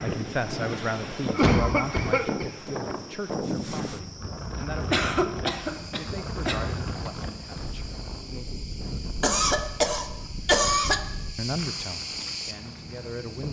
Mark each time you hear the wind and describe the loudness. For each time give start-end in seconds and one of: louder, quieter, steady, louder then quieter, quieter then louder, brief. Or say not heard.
0.0-13.4 quieter.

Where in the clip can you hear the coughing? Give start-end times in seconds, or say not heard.
1.3-2.5, 4.9-6.6, 9.2-11.0.